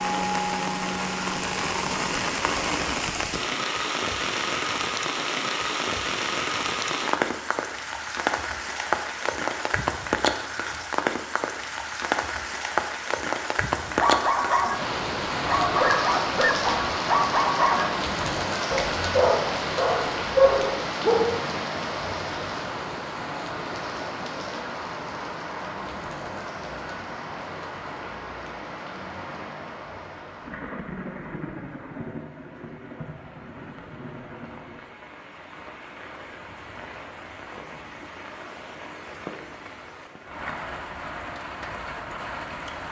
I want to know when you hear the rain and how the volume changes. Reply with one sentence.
The rain can be heard from 0.0 to 42.8 s, getting quieter.